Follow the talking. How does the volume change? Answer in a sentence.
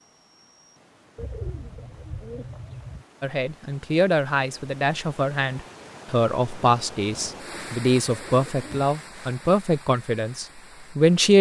The volume of the talking stays about the same.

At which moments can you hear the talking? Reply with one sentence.
You can hear the talking from 3.2 to 11.3 s.